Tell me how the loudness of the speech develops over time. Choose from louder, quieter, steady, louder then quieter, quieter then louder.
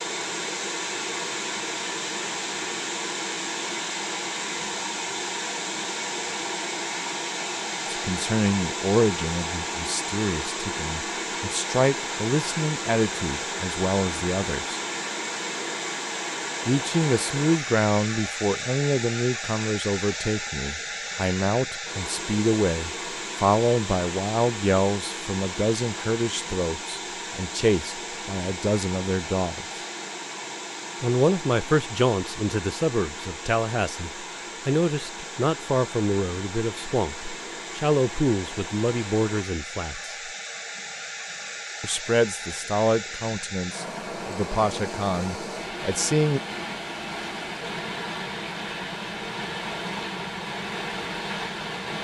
steady.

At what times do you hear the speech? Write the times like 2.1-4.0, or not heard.
7.9-14.8, 16.6-29.8, 31.0-40.1, 41.8-46.4.